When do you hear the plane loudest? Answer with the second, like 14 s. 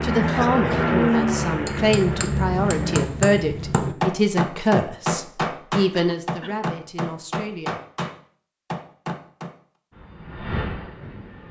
1 s.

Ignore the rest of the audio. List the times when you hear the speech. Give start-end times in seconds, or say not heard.
0.0-7.8.